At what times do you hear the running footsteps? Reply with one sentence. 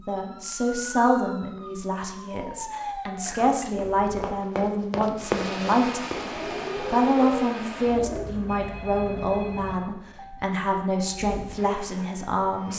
You can hear the running footsteps from 3.2 to 6.7 s.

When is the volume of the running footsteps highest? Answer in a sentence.
The volume of the running footsteps peaks at 5 seconds.